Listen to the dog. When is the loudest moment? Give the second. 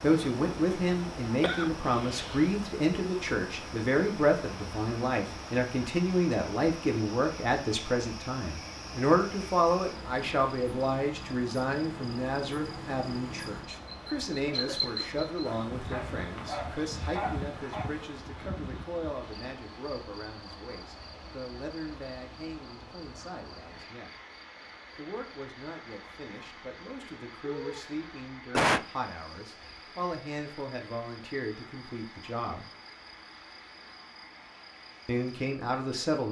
17 s.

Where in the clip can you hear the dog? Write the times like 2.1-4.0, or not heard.
15.6-18.1.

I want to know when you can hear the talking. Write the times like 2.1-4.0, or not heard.
0.0-24.1, 24.9-32.6, 35.0-36.2.